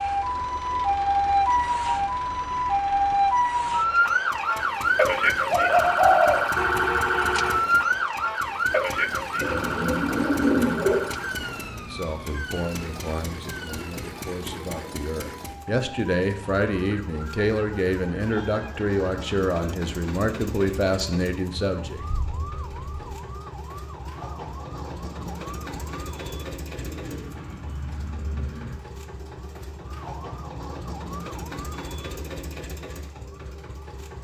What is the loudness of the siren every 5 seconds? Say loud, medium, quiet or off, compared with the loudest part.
loud, loud, quiet, quiet, quiet, quiet, quiet.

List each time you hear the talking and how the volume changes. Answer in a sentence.
The talking can be heard from 11.8 to 22.0 s, getting louder.